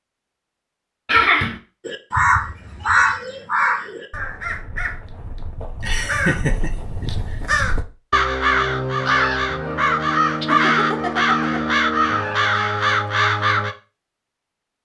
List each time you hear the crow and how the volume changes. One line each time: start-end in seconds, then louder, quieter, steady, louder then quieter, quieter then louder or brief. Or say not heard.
1.9-13.8 quieter then louder.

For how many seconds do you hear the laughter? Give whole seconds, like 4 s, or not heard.
3 s.